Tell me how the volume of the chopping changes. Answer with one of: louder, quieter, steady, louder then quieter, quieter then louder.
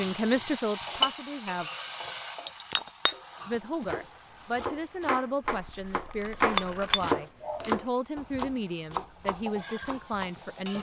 louder then quieter.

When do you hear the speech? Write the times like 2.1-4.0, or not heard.
0.0-1.7, 3.5-10.7.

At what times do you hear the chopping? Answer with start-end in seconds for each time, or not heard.
3.8-10.6.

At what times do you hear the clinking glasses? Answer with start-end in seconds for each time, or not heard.
2.5-3.6, 6.5-7.7.